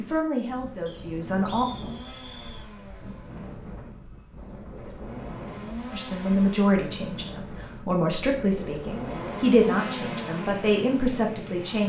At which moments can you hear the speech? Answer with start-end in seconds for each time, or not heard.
0.0-1.6, 5.9-11.8.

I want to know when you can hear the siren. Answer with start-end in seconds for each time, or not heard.
not heard.